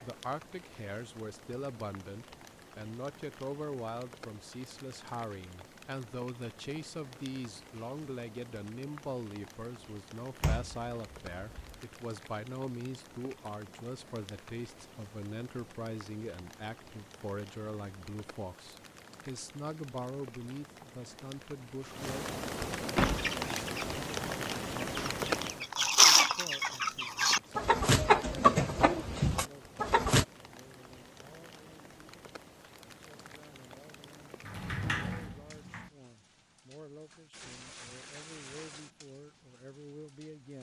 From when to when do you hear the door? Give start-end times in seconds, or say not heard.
10.4-11.8, 22.9-23.4, 34.5-35.9.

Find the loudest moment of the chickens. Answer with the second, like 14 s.
26 s.